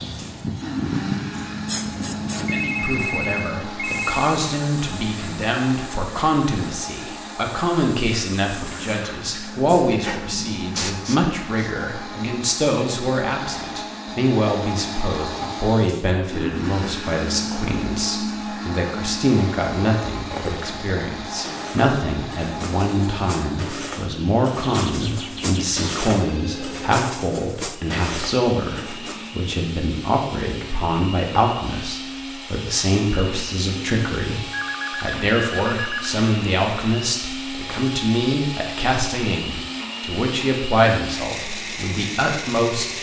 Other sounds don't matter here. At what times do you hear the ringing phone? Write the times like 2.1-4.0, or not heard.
2.5-4.3, 24.6-26.9, 34.5-36.1.